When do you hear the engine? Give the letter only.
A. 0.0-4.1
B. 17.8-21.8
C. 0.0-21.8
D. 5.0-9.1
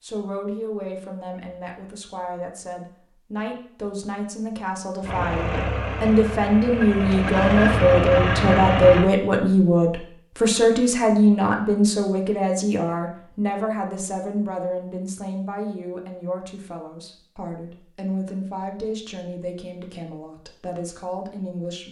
D.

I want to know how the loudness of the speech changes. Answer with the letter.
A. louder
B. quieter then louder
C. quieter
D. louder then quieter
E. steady
D.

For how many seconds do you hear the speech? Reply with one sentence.
You can hear the speech for 22 seconds altogether.